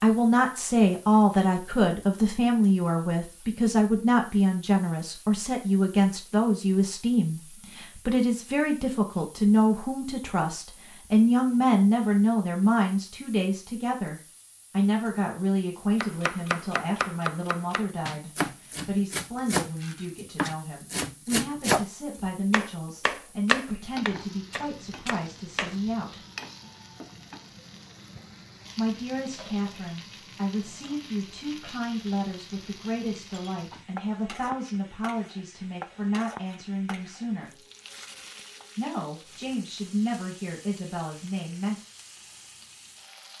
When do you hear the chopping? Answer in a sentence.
You can hear the chopping from 16.0 to 25.8 s.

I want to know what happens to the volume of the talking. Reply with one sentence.
The loudness of the talking goes down.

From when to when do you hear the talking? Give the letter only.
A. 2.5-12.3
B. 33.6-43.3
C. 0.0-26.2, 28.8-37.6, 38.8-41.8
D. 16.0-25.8
C.